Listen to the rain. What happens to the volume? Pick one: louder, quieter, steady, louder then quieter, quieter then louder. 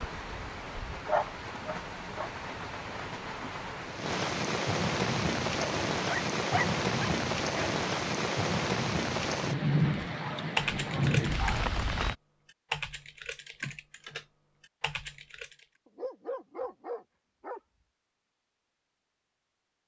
louder.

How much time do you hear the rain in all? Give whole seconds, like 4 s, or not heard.
12 s.